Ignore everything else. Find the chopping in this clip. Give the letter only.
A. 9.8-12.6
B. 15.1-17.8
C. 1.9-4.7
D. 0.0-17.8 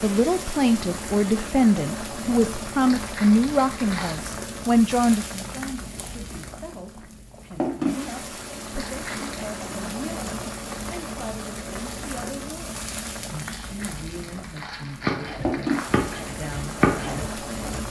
B.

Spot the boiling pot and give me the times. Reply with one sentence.
The boiling pot can be heard from 0.0 to 17.8 s.